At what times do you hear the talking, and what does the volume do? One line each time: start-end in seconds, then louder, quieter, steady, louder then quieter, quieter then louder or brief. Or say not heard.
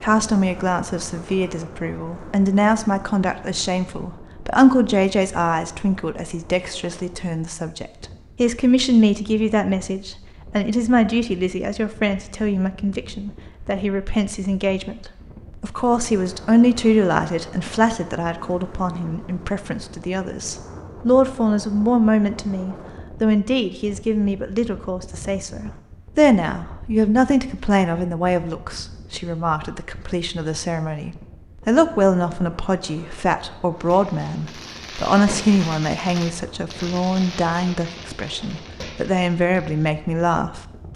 0.0-40.9 steady.